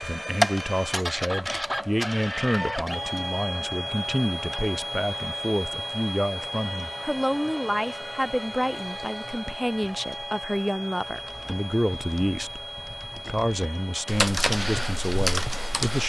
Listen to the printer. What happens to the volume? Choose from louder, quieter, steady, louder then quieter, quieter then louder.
quieter.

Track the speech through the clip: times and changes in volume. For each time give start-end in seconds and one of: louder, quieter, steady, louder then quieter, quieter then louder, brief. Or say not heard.
0.0-16.0 steady.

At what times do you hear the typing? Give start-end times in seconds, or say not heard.
11.0-16.0.